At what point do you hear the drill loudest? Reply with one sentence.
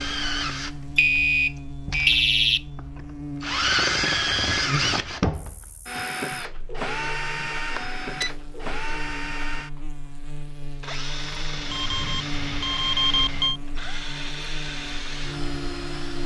The loudest moment of the drill is at 4 seconds.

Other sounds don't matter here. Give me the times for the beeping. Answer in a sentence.
The beeping can be heard from 0.9 to 2.6 s, from 7.8 to 8.3 s and from 11.7 to 13.6 s.